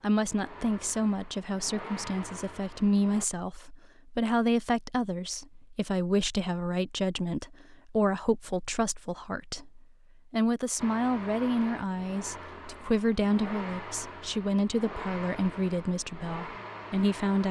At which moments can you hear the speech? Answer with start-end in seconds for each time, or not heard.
0.0-17.4.